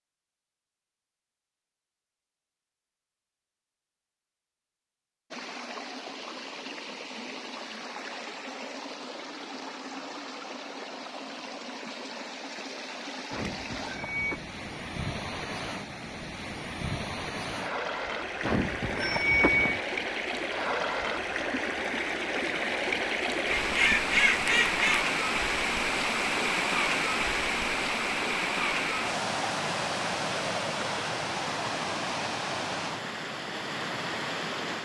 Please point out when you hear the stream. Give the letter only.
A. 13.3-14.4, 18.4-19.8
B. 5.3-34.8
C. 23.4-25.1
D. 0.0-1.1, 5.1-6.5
B.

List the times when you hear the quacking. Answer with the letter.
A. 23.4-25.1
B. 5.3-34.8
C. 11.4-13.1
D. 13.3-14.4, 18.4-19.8
A.